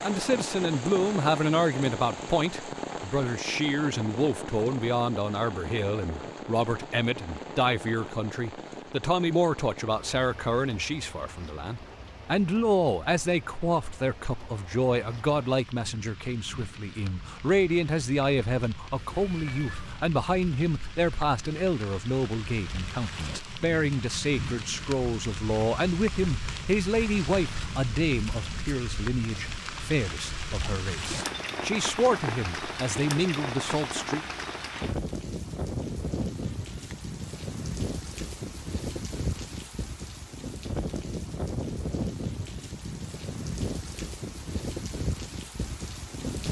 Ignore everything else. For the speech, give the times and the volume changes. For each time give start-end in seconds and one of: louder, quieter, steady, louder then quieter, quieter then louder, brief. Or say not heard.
0.0-34.2 steady.